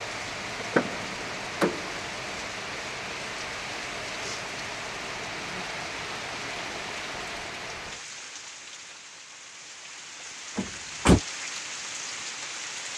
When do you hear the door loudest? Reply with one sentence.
The volume of the door peaks at 11 seconds.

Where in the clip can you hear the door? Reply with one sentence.
You can hear the door from 0.6 to 2.0 s and from 10.6 to 11.2 s.